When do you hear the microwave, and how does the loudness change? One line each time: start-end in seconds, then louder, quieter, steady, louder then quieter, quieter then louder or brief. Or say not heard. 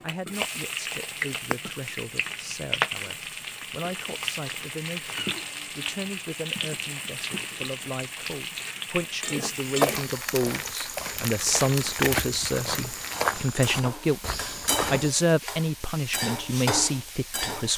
not heard.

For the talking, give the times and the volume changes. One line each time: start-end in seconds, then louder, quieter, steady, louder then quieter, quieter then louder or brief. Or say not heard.
0.0-17.7 louder.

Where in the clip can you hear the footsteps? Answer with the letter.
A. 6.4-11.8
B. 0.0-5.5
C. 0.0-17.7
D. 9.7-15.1
D.